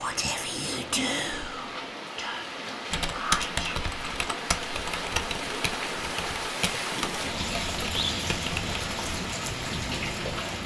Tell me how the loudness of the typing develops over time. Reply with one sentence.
The loudness of the typing goes down.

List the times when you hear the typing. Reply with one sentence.
You can hear the typing from 2.9 to 10.4 s.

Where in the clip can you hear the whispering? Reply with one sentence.
The whispering can be heard from 0.0 to 3.9 s.